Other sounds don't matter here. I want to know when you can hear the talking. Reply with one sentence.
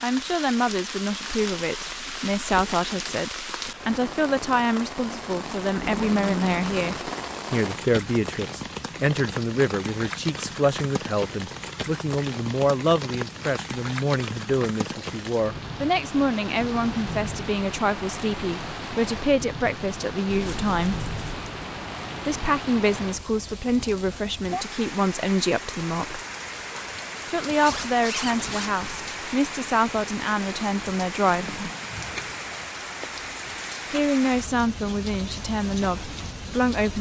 You can hear the talking from 0.0 to 21.0 s, from 22.2 to 26.2 s, from 27.2 to 31.6 s and from 33.9 to 36.9 s.